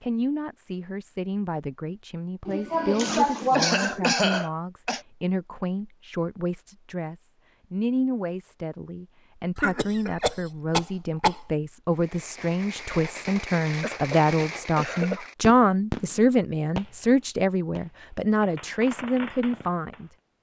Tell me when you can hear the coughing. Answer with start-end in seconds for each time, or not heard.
2.5-5.0, 9.6-11.4, 13.8-15.3.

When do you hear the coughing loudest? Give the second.
4 s.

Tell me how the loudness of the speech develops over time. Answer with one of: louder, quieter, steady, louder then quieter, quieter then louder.
louder.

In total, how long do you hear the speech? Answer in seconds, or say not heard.
20 s.